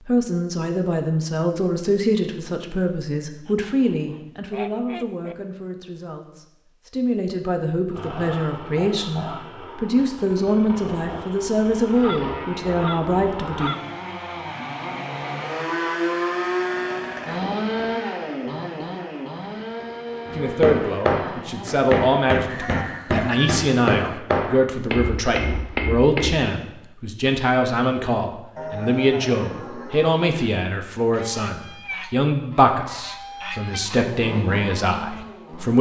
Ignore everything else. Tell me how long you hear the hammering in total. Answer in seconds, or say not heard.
6 s.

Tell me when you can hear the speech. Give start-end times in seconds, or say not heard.
0.1-13.8, 20.4-35.7.